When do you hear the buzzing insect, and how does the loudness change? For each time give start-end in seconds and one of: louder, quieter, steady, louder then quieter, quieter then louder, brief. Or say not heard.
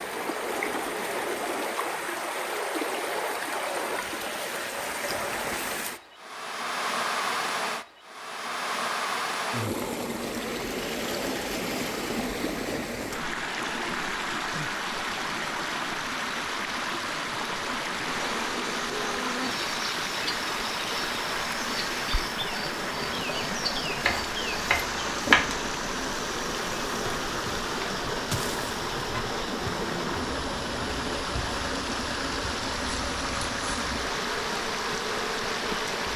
18.1-36.1 steady.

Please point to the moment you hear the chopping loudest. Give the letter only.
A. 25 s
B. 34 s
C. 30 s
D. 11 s
A.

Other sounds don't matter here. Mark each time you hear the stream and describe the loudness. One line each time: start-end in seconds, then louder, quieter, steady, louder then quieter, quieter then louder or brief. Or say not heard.
0.0-36.1 steady.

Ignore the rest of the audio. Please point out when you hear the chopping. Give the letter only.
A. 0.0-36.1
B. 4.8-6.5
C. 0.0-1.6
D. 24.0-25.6
D.